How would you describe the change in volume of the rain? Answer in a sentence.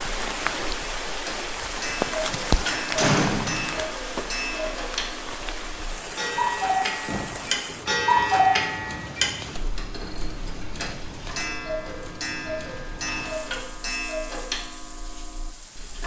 The loudness of the rain goes down.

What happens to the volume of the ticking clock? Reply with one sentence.
The volume of the ticking clock goes up, then down.